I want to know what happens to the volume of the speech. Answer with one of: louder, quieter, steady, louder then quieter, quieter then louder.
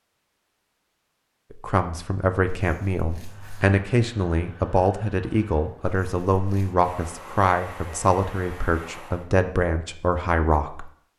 steady.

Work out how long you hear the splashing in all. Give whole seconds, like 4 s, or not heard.
not heard.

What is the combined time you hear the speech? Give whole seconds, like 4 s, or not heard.
9 s.